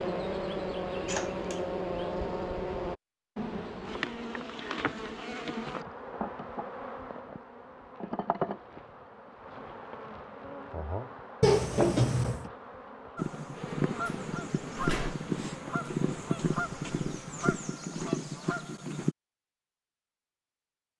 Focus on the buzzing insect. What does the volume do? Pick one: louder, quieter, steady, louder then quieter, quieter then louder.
quieter.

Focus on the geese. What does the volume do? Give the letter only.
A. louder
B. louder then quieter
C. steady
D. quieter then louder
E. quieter
C.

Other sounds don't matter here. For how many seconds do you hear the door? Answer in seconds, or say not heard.
3 s.